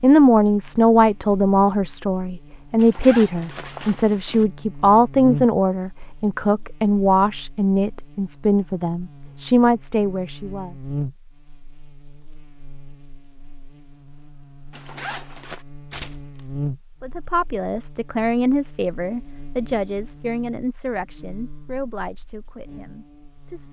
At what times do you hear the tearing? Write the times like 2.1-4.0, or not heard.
15.9-16.4.